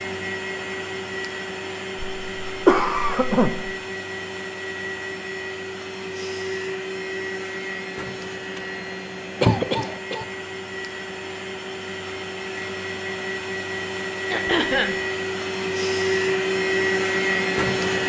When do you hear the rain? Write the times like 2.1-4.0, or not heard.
not heard.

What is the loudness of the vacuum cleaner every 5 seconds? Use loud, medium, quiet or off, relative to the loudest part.
medium, medium, medium, loud.